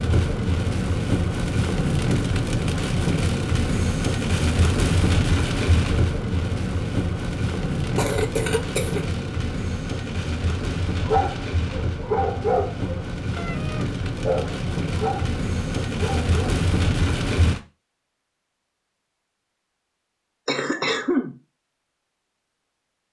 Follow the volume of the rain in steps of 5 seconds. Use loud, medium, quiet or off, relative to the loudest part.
loud, loud, medium, loud, off.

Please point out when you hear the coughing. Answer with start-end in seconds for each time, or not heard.
8.0-9.1, 20.4-21.4.